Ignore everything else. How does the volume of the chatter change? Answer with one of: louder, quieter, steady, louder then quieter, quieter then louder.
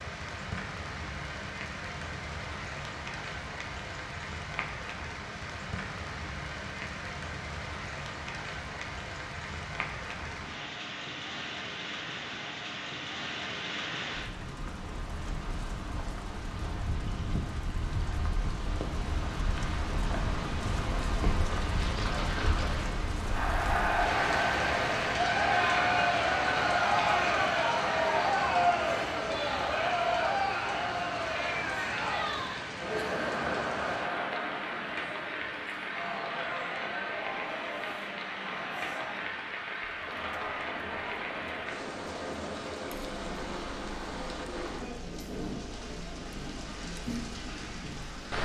quieter.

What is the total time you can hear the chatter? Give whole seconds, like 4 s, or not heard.
26 s.